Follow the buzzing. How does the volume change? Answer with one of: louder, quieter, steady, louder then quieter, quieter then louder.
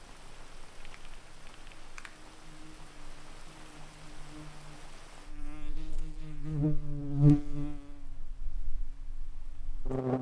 louder then quieter.